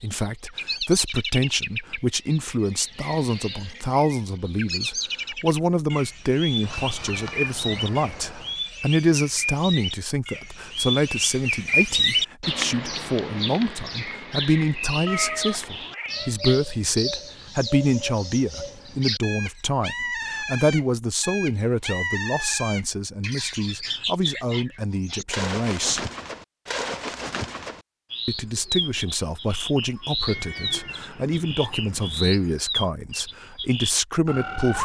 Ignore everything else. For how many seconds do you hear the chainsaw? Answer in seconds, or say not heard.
not heard.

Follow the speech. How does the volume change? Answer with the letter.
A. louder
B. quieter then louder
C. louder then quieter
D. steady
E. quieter
D.